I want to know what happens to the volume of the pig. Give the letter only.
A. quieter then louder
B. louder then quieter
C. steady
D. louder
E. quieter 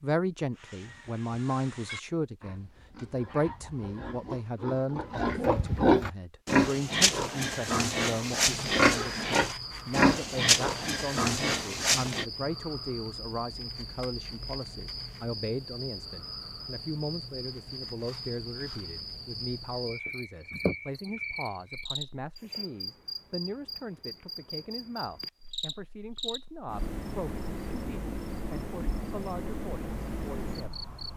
D.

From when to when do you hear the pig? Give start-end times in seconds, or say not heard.
0.6-12.2.